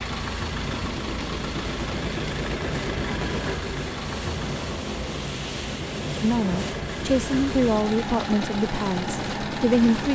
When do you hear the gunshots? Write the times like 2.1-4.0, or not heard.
0.7-3.6.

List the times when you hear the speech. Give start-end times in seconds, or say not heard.
6.2-10.1.